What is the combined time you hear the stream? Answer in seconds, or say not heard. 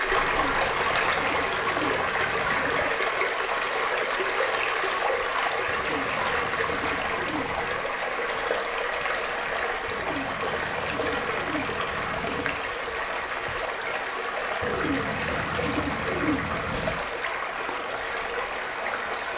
19 s.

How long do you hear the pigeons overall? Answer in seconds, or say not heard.
10 s.